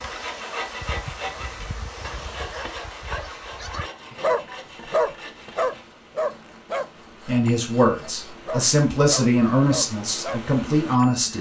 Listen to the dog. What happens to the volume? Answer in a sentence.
The volume of the dog goes up, then down.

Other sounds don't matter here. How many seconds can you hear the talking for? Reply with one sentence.
The talking can be heard for 4 seconds in total.